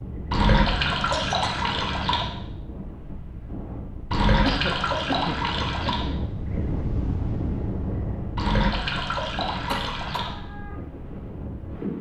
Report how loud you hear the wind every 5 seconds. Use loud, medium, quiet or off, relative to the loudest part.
medium, loud, loud.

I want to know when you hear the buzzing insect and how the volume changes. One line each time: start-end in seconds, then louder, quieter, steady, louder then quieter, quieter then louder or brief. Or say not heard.
not heard.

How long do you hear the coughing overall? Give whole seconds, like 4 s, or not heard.
3 s.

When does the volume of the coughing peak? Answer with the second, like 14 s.
5 s.